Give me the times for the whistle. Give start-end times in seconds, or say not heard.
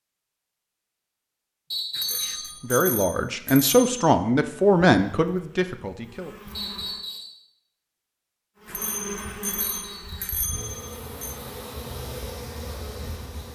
1.7-2.5, 6.5-7.4, 9.6-10.3.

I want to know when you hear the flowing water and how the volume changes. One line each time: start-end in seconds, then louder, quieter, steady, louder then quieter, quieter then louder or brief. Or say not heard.
not heard.